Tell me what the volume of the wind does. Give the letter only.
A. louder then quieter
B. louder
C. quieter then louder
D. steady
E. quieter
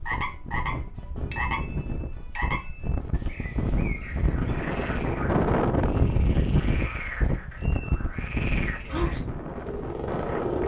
A.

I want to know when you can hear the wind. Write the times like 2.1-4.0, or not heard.
0.0-10.6.